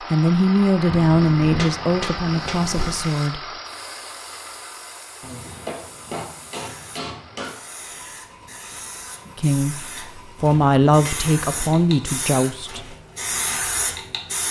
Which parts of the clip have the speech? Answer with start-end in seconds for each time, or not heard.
0.1-3.4, 9.3-9.8, 10.4-12.9.